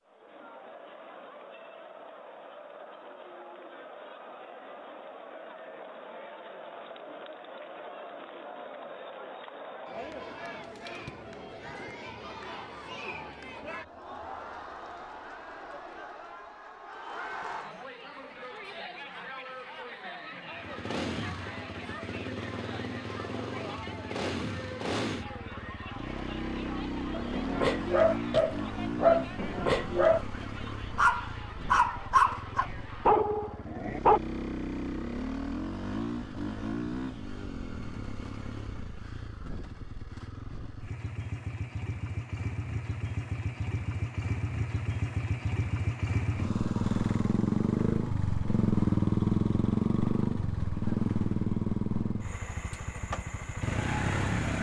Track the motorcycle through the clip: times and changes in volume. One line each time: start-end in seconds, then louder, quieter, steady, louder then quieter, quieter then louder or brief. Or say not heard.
20.5-54.5 louder.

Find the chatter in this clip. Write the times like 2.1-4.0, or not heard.
0.0-33.2.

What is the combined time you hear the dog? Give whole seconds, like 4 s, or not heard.
7 s.